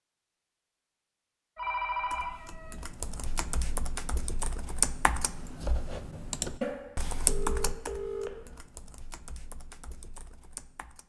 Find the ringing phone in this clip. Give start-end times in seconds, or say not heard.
1.6-2.8, 6.6-8.6.